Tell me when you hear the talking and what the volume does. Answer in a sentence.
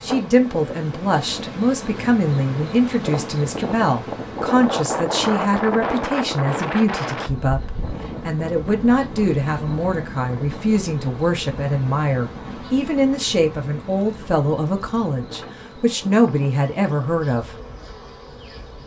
You can hear the talking from 0.0 to 17.6 s, at a steady volume.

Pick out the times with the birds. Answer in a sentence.
You can't hear the birds here.